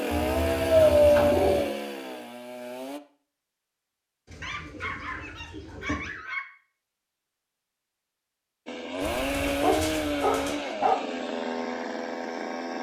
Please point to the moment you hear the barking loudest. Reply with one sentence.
The loudest moment of the barking is at 1 second.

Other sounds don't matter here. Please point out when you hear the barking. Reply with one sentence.
The barking can be heard from 0.3 to 1.6 s, from 4.4 to 6.5 s and from 9.6 to 11.0 s.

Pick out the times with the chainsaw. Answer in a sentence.
You can hear the chainsaw from 0.0 to 3.0 s and from 8.7 to 12.7 s.